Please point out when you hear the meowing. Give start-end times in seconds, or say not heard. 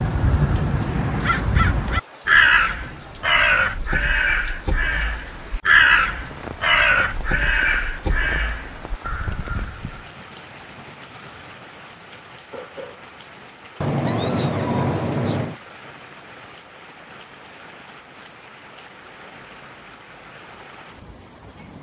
13.8-15.6.